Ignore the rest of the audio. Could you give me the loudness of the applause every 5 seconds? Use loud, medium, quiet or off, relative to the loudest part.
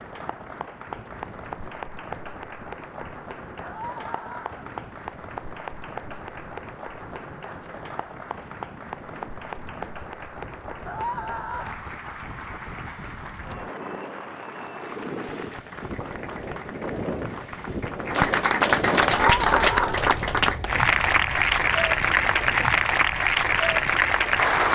quiet, quiet, quiet, loud, loud.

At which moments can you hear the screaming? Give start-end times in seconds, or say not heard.
3.6-4.8, 10.8-11.8, 19.1-19.9.